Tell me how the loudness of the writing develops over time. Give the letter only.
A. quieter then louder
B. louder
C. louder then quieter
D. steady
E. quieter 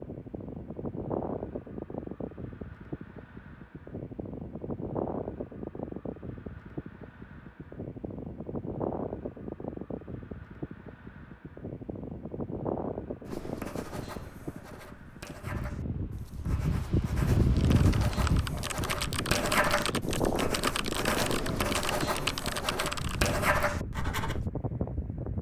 B.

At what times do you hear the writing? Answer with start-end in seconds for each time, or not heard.
13.2-24.5.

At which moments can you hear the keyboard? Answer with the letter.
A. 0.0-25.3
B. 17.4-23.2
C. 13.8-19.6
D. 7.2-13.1
B.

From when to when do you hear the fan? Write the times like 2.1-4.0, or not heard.
0.0-25.3.